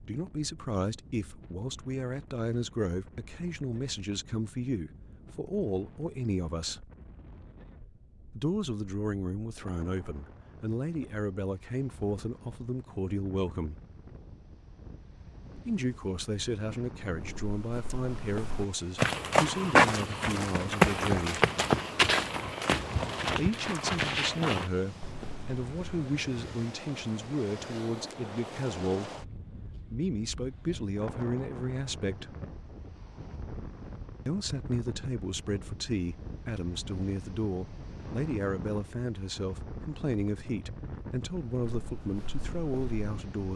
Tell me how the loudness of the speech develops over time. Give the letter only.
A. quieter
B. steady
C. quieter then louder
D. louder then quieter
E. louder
B.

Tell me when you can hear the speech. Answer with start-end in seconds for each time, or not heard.
0.1-6.9, 8.3-13.8, 15.6-21.4, 23.2-32.4, 34.2-43.5.